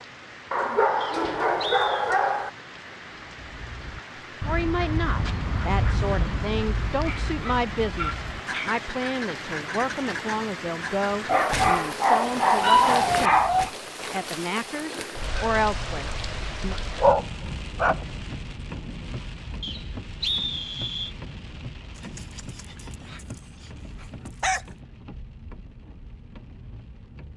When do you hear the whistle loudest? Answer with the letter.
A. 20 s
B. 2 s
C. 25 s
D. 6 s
A.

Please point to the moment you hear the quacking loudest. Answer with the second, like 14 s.
6 s.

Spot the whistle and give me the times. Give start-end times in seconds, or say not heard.
1.0-2.1, 19.6-21.1.